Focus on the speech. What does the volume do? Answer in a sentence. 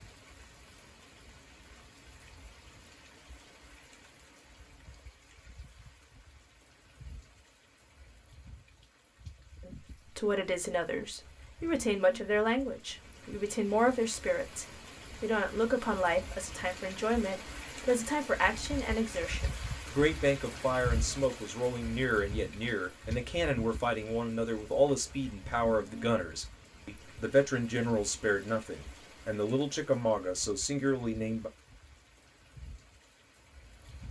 The loudness of the speech stays about the same.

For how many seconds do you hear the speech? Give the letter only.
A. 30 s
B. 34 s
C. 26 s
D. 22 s
D.